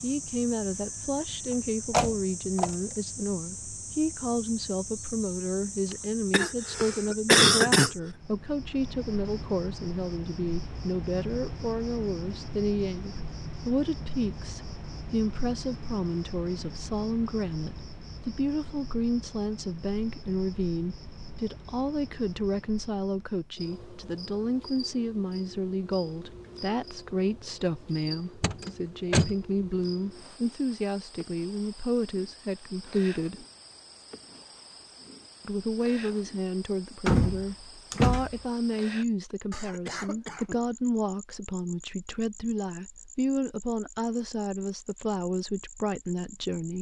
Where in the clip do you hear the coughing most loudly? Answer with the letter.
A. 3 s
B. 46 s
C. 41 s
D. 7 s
D.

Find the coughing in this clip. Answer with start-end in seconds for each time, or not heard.
5.9-7.9, 39.5-40.6.